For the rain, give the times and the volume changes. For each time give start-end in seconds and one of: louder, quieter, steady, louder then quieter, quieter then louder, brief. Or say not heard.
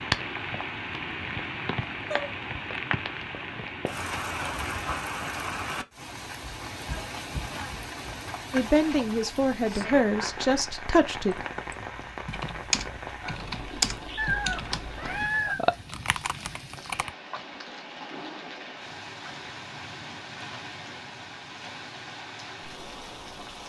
0.0-23.6 quieter.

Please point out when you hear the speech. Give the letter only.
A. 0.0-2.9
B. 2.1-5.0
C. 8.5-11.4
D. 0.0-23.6
C.